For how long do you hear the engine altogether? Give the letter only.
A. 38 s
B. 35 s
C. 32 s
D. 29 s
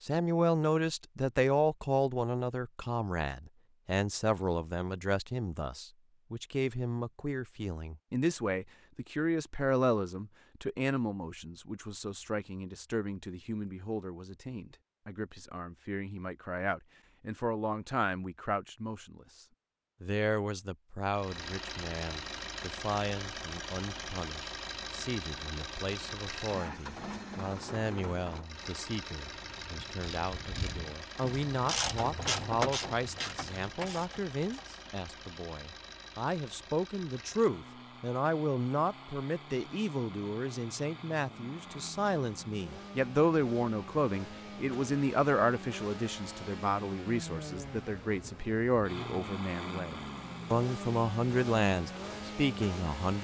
C.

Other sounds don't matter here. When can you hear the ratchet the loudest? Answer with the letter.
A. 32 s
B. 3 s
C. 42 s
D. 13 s
A.